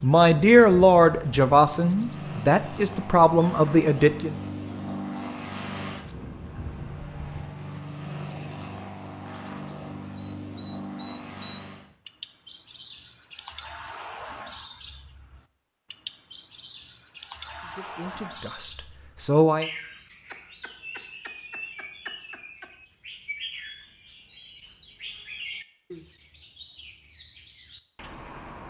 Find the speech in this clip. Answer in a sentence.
You can hear the speech from 0.0 to 4.3 s and from 17.6 to 19.6 s.